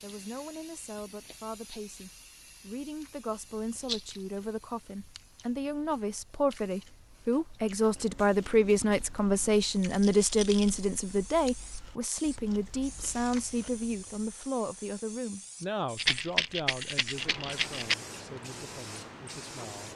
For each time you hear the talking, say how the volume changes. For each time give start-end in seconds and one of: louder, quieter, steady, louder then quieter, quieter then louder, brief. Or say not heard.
0.0-19.9 louder then quieter.